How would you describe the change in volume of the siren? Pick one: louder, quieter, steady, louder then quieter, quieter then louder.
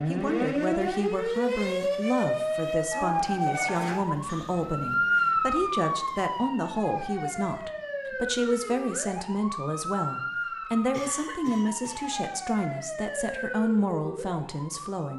quieter.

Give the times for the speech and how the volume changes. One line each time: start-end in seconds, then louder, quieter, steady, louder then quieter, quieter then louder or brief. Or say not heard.
0.1-15.1 steady.